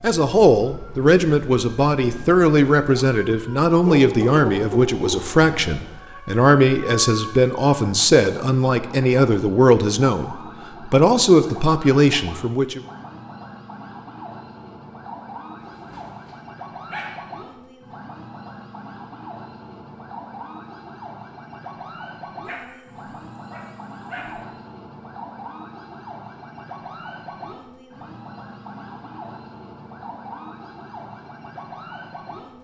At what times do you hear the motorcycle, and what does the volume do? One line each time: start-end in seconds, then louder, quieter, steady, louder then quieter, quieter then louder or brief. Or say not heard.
not heard.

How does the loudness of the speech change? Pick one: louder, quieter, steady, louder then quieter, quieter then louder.
steady.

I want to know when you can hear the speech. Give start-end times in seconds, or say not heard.
0.0-12.8.